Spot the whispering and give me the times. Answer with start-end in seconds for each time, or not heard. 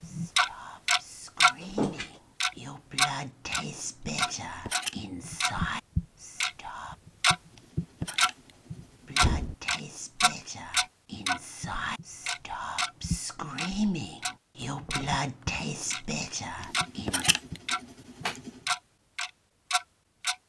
0.0-7.0, 9.1-17.3.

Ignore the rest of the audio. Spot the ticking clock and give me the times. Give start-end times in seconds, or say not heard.
0.0-1.6, 2.4-20.4.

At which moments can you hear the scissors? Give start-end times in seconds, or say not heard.
4.3-5.0, 7.5-9.2, 16.6-18.5.